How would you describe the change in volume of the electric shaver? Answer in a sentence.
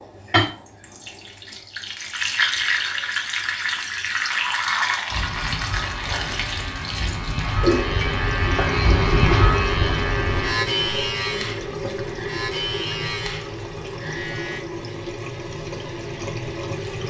The volume of the electric shaver goes up, then down.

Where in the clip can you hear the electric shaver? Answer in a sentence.
The electric shaver can be heard from 5.0 to 14.6 s.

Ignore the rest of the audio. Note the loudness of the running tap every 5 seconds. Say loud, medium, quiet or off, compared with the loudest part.
loud, loud, medium, medium.